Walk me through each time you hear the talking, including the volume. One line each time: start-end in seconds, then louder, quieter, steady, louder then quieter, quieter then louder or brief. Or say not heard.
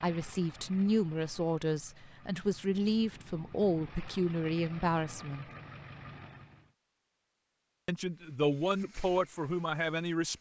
0.0-5.5 steady
7.8-10.3 brief.